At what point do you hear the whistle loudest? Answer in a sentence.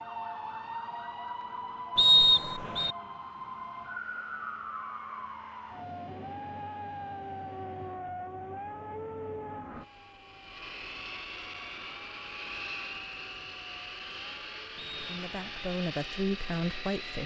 The loudest moment of the whistle is at 2 seconds.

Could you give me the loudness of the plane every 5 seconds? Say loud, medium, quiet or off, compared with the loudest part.
quiet, quiet, loud, loud.